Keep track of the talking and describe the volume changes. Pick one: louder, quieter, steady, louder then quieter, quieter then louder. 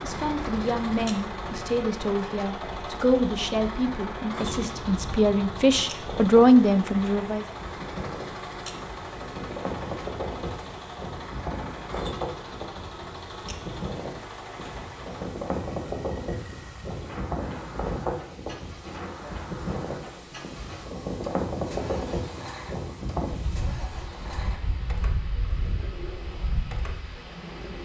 louder.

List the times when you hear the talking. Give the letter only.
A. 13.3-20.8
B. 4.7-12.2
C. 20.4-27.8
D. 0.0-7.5
D.